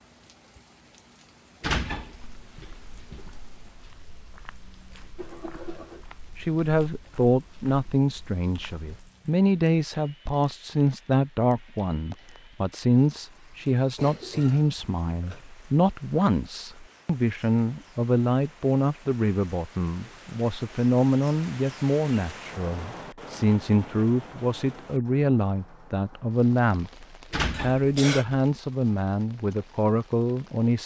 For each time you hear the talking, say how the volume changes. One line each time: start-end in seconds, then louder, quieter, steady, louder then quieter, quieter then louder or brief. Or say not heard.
6.3-30.8 steady.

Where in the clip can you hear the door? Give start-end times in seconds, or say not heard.
1.6-3.2, 27.3-28.5.